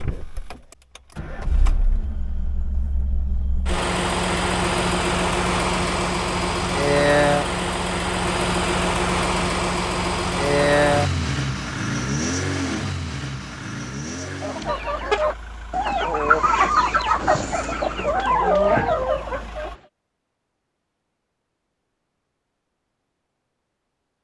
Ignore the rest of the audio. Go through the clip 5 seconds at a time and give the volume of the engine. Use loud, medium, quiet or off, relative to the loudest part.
medium, loud, loud, quiet, off.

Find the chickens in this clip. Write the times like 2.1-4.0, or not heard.
14.2-19.7.